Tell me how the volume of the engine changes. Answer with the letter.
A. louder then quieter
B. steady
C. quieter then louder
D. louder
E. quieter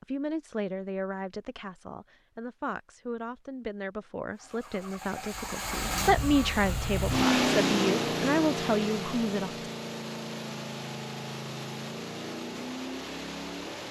A.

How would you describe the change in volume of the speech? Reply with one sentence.
The loudness of the speech goes up.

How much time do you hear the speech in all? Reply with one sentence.
You can hear the speech for 10 seconds altogether.